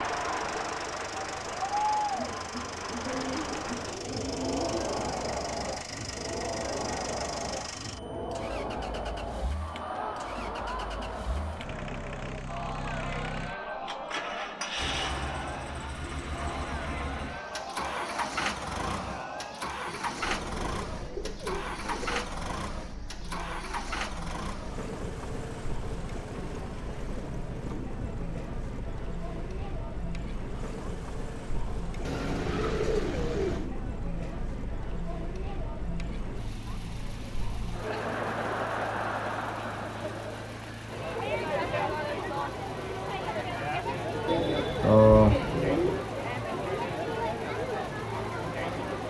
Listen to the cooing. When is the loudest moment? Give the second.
45 s.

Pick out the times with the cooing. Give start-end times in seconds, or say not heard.
3.0-4.9, 19.9-22.2, 32.0-33.7, 44.2-46.0.